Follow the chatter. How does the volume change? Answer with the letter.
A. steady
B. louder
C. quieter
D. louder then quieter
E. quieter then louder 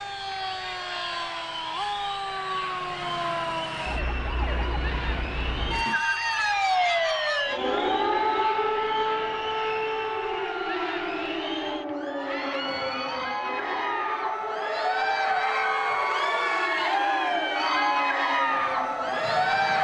B.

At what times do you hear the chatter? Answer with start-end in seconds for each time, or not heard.
0.0-19.7.